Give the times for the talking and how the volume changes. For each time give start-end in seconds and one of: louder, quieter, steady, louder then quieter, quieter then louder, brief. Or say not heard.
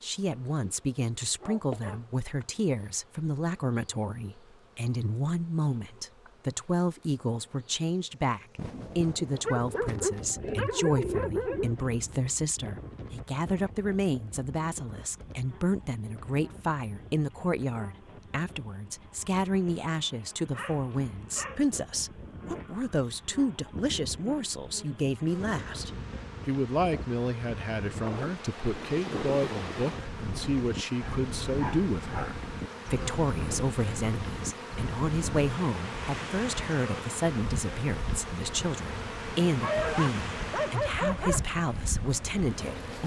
0.0-43.0 steady.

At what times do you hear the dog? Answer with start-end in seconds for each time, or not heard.
1.4-1.9, 9.4-11.8, 20.6-21.6, 31.0-32.4, 39.6-41.5.